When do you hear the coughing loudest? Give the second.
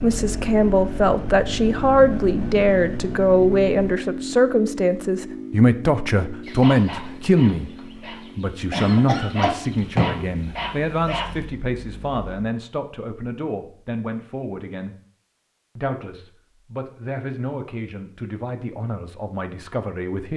10 s.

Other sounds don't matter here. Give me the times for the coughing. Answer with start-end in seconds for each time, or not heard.
8.7-10.2.